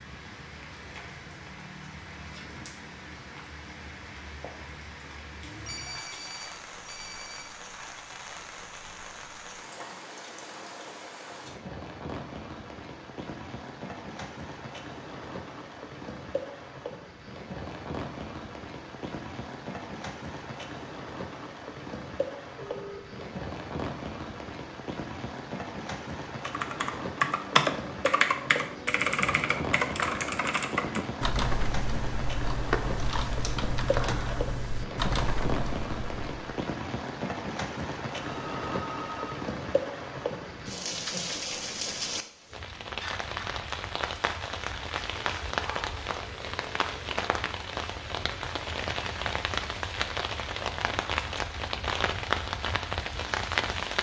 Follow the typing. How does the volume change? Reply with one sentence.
The loudness of the typing goes down.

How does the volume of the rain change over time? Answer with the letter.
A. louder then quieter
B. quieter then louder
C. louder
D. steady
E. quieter
C.